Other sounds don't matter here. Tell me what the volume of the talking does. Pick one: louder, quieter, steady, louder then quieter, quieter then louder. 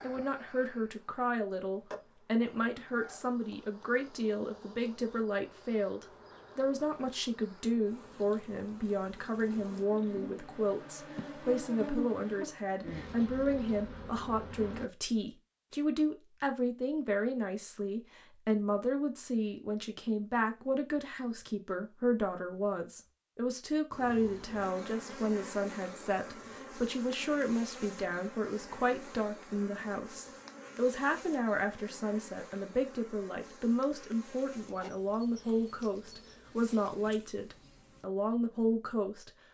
steady.